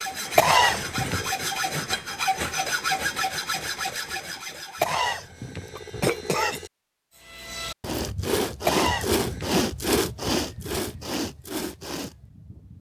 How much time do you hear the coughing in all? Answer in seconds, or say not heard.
4 s.